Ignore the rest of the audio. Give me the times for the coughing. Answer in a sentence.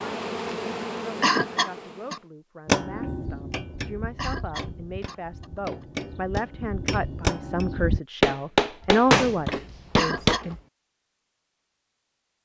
You can hear the coughing from 1.2 to 2.2 s, from 4.2 to 5.6 s and from 9.9 to 10.4 s.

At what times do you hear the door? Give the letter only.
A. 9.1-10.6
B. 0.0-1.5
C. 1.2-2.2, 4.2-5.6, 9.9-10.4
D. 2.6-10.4
A.